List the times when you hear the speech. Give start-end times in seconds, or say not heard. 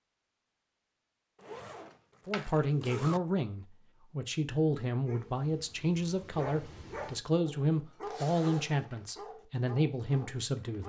2.2-10.8.